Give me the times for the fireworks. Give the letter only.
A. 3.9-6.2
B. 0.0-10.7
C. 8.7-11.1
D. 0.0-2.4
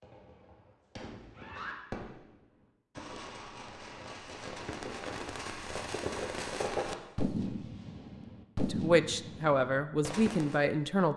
B.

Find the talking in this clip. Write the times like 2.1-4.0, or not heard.
8.7-11.1.